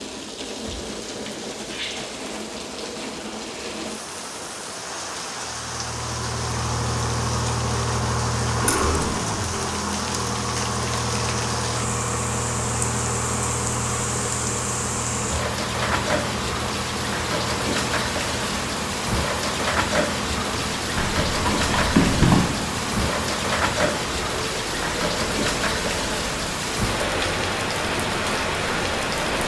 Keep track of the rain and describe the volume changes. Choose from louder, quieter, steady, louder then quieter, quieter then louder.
louder.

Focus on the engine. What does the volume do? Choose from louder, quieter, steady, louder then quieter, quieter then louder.
quieter.